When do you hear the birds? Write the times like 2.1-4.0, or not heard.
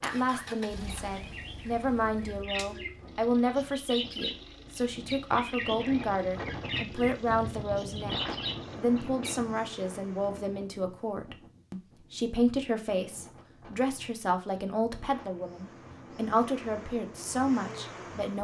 0.2-9.3.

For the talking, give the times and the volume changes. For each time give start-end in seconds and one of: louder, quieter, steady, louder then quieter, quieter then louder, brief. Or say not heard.
0.0-18.3 steady.